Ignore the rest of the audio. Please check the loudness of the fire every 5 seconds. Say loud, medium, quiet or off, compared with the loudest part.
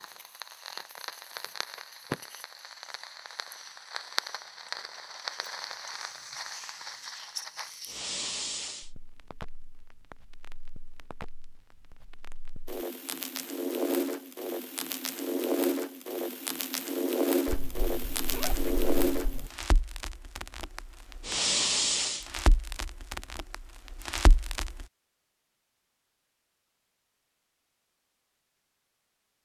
medium, medium, medium, loud, loud, off.